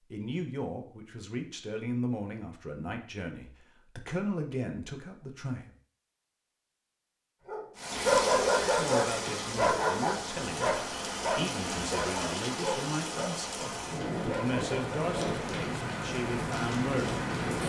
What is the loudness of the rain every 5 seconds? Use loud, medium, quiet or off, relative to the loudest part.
off, loud, loud, loud.